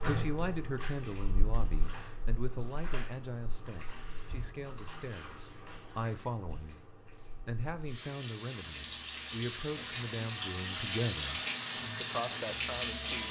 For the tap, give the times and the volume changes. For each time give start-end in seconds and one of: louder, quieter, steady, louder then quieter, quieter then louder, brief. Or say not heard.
0.0-13.2 quieter then louder.